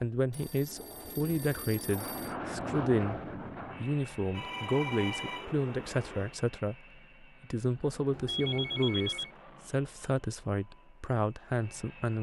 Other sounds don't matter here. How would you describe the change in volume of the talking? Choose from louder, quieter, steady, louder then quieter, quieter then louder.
steady.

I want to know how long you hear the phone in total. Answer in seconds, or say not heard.
5 s.